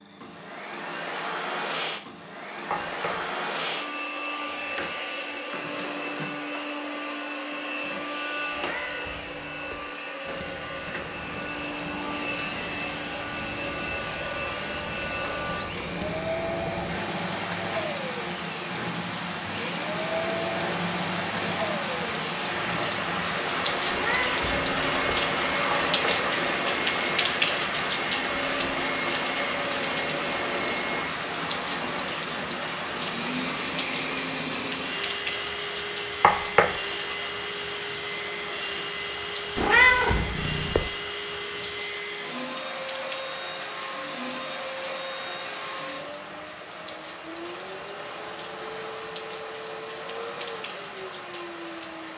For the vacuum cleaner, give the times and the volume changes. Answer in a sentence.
You can hear the vacuum cleaner from 0.0 to 52.1 s, at a steady volume.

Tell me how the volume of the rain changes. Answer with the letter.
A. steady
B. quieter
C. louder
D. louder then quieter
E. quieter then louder
D.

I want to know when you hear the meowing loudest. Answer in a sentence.
The loudest moment of the meowing is at 40 seconds.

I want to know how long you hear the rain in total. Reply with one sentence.
You can hear the rain for 42 seconds altogether.